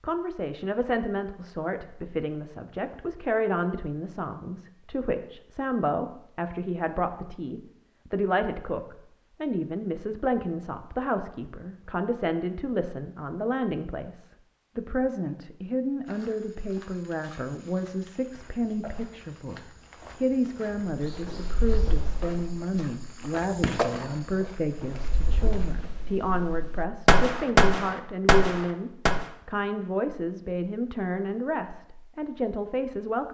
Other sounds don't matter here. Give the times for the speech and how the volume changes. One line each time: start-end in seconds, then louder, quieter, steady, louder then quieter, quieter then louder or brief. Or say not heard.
0.0-33.3 steady.